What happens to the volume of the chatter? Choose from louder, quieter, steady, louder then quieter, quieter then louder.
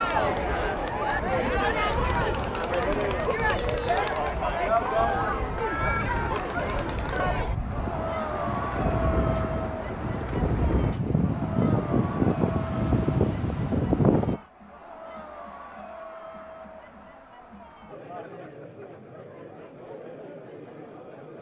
quieter.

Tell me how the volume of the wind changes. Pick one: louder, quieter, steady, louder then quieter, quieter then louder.
louder.